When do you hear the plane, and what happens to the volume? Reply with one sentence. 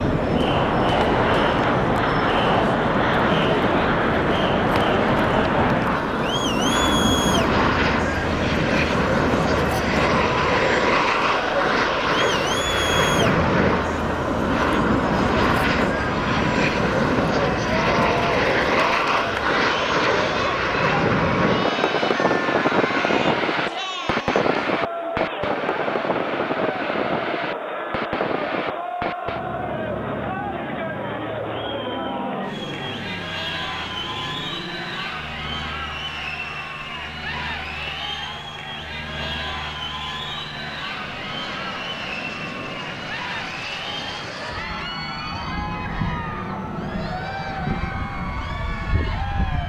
You can hear the plane from 0.0 to 49.6 s, getting quieter.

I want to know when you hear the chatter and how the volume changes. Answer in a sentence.
The chatter can be heard from 0.0 to 49.6 s, getting quieter.